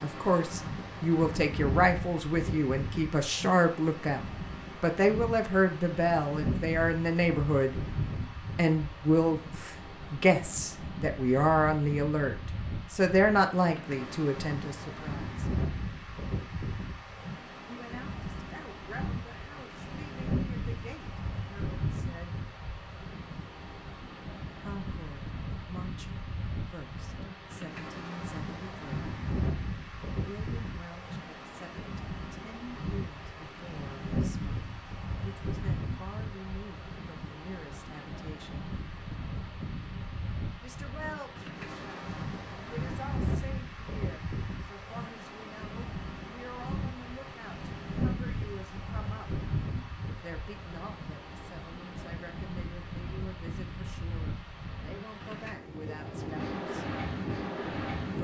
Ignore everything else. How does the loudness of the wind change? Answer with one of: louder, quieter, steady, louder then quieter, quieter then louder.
steady.